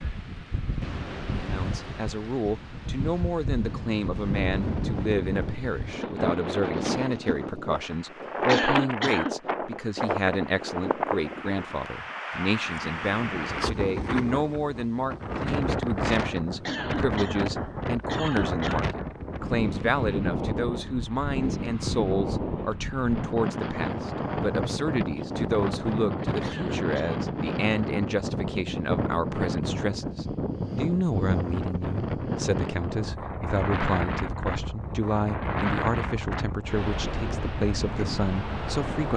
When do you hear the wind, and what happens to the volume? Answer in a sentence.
The wind can be heard from 0.0 to 39.1 s, at a steady volume.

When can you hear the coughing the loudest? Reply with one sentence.
The volume of the coughing peaks at 9 seconds.